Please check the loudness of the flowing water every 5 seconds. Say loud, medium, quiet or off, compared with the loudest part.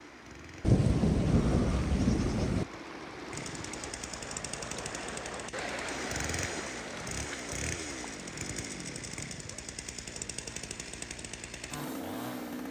loud, loud, medium.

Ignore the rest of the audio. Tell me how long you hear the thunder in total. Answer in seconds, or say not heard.
2 s.